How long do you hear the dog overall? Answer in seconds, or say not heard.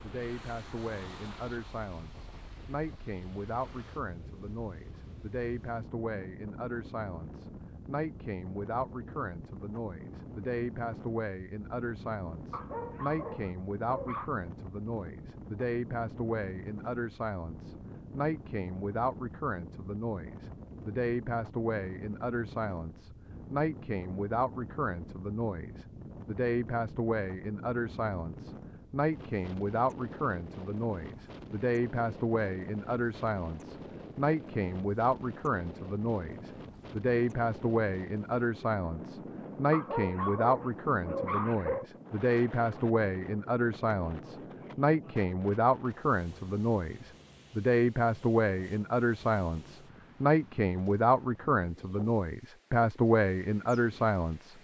4 s.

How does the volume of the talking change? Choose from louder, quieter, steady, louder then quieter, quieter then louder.
louder.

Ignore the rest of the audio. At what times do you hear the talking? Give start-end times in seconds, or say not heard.
0.0-54.5.